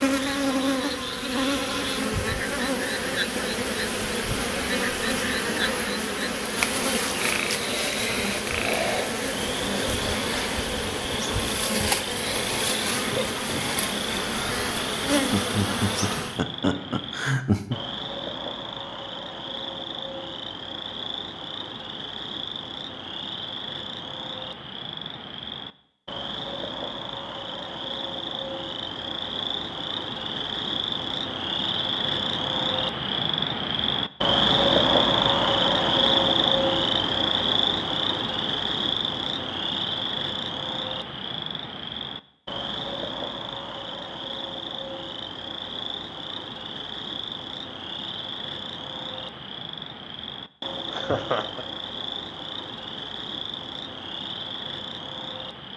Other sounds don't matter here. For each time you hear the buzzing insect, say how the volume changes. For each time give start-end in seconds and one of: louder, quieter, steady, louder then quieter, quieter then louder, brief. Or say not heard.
0.0-16.4 steady.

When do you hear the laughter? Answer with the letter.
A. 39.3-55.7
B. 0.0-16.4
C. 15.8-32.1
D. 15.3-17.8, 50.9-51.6
D.